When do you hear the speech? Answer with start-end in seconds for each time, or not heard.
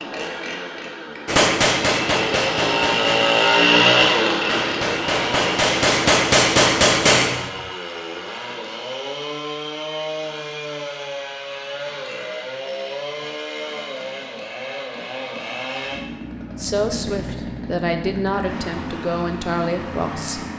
16.6-20.4.